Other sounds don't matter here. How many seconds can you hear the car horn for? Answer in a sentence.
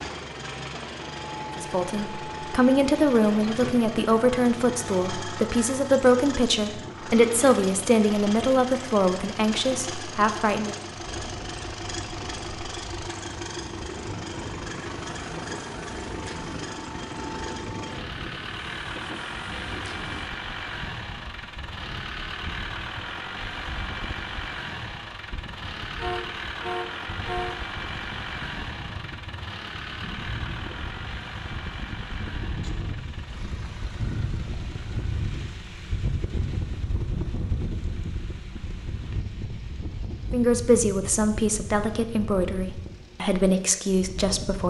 The car horn can be heard for 2 seconds in total.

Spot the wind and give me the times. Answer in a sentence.
You can hear the wind from 10.9 to 44.6 s.